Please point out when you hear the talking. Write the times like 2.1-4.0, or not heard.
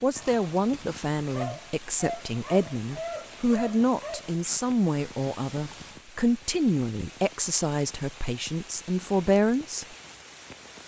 0.0-9.8.